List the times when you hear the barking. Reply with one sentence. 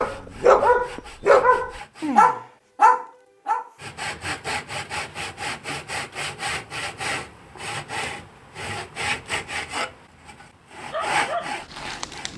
The barking can be heard from 0.0 to 4.3 s and from 10.8 to 12.3 s.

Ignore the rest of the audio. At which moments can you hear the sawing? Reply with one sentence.
You can hear the sawing from 0.0 to 2.4 s and from 3.8 to 12.3 s.